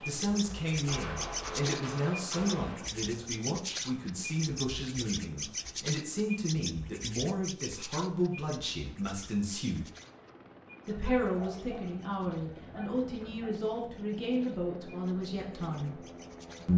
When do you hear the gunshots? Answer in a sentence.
You can hear the gunshots from 0.8 to 2.9 s.